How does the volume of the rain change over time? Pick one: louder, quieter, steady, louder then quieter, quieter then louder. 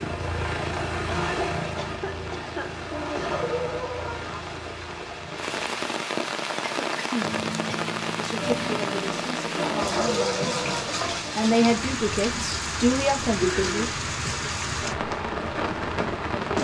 louder.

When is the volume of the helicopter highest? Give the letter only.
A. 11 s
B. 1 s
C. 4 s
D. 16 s
B.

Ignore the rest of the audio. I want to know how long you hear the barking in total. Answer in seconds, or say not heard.
3 s.